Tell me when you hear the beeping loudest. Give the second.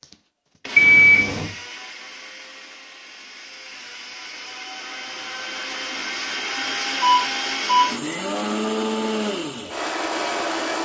1 s.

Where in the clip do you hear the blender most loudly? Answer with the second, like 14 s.
9 s.